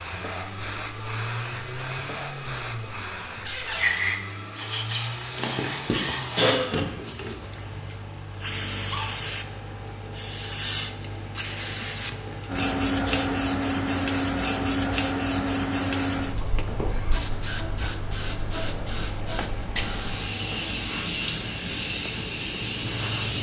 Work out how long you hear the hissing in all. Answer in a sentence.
The hissing can be heard for 23 seconds in total.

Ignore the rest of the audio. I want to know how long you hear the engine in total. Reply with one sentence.
You can hear the engine for 23 seconds altogether.